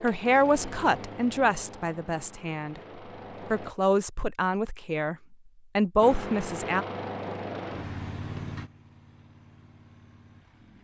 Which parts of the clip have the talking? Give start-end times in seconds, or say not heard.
0.0-2.8, 3.5-5.2, 5.8-6.8.